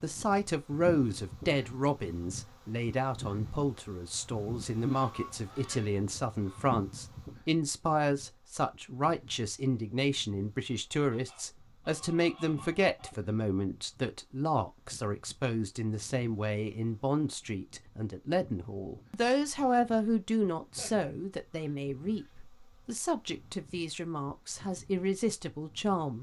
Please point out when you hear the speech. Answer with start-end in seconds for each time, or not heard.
0.0-26.1.